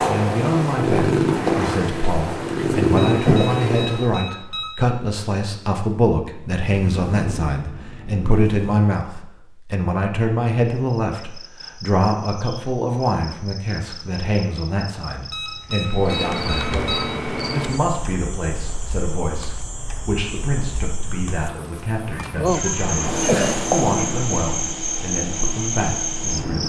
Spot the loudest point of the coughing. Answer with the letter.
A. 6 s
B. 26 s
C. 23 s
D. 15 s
C.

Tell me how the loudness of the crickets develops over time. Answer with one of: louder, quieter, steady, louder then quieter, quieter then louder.
louder.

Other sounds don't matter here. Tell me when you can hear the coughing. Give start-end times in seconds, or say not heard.
22.1-23.6.